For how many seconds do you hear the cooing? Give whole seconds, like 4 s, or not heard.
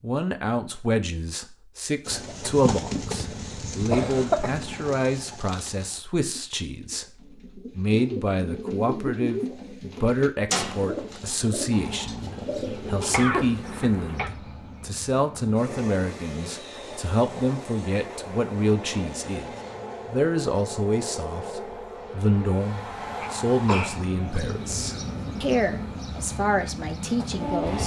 11 s.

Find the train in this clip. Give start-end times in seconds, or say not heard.
11.7-27.8.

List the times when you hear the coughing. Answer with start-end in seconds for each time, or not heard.
3.9-4.5, 13.1-14.3, 23.2-24.4.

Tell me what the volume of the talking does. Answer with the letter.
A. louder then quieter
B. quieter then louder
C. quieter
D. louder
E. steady
E.